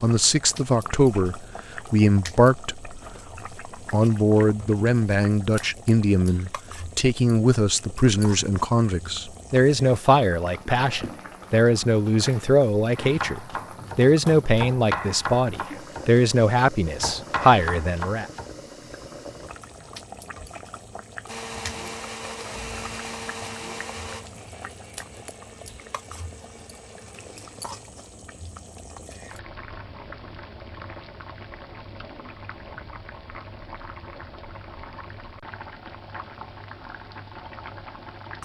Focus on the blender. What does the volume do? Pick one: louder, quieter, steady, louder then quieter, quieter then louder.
quieter.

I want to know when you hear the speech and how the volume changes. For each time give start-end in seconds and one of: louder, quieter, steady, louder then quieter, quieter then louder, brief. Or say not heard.
0.0-3.0 brief
3.9-18.2 steady.